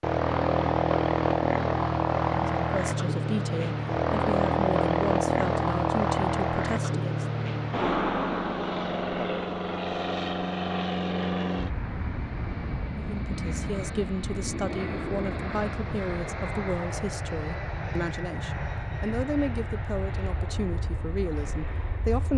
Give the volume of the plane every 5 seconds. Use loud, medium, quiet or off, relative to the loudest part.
loud, loud, medium, medium, quiet.